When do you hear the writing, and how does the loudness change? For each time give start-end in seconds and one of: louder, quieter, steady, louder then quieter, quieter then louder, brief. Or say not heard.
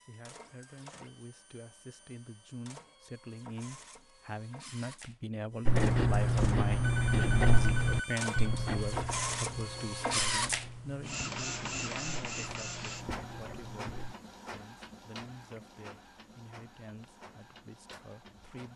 5.7-14.2 quieter.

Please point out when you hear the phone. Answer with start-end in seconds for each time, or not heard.
6.8-8.5.